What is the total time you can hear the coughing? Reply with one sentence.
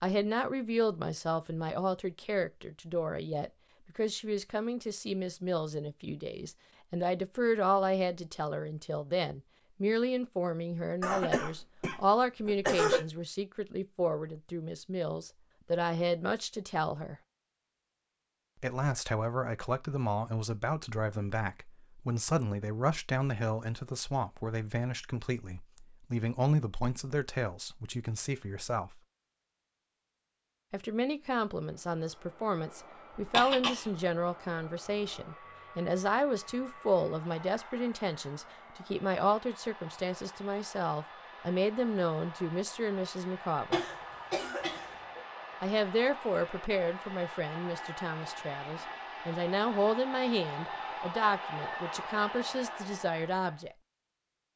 The coughing can be heard for 4 seconds in total.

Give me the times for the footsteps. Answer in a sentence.
You can't hear the footsteps here.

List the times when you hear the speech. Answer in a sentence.
The speech can be heard from 0.0 to 17.1 s, from 18.6 to 29.0 s, from 30.7 to 43.8 s and from 45.6 to 53.8 s.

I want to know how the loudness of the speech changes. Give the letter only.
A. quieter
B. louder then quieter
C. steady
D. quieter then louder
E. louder
C.